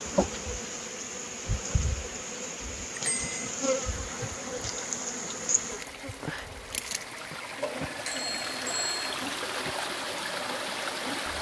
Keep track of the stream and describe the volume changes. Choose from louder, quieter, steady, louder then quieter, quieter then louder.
louder.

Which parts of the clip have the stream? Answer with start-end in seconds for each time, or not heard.
0.0-11.3.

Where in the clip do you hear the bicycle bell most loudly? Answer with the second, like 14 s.
9 s.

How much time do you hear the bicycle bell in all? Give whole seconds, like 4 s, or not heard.
2 s.